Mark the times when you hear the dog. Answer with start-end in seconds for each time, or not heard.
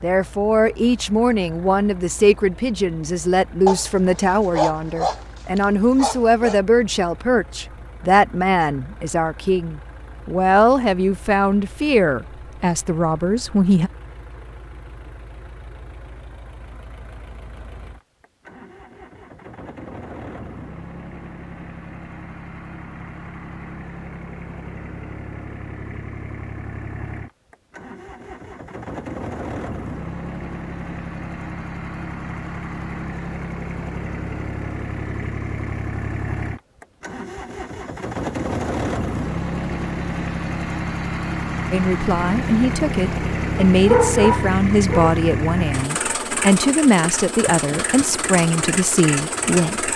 3.6-6.6, 43.7-45.1.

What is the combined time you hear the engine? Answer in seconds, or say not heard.
50 s.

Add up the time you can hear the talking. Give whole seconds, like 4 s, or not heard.
22 s.